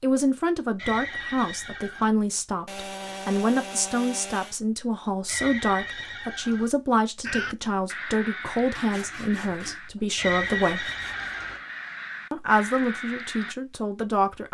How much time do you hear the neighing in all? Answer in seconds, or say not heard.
4 s.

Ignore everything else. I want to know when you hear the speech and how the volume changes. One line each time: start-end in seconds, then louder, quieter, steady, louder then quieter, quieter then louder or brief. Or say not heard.
0.0-10.9 steady
12.3-14.4 brief.